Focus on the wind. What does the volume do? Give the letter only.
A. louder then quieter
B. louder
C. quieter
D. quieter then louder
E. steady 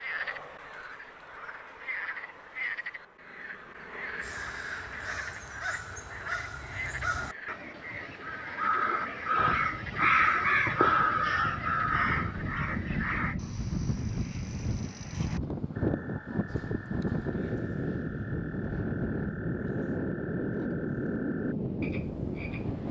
B.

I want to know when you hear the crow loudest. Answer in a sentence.
The loudest moment of the crow is at 10 seconds.